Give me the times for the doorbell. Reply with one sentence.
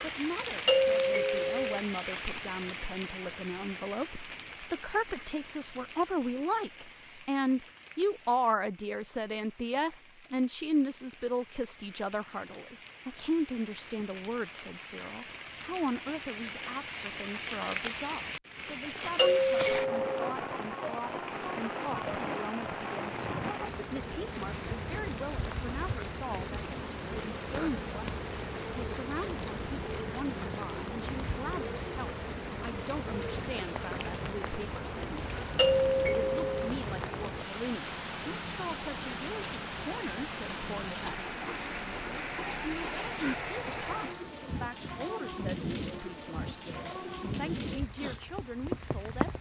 You can hear the doorbell from 0.7 to 1.8 s, from 19.1 to 20.3 s and from 35.5 to 36.7 s.